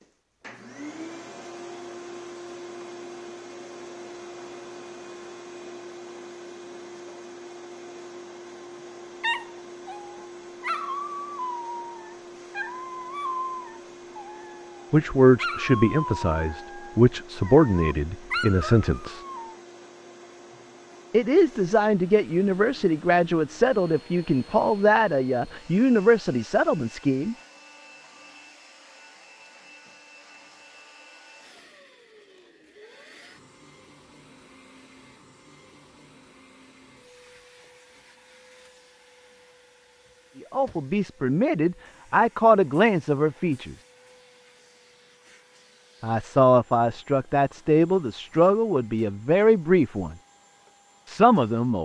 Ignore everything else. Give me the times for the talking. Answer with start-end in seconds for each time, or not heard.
14.9-19.2, 21.1-27.4, 40.5-43.8, 46.0-50.1, 51.0-51.7.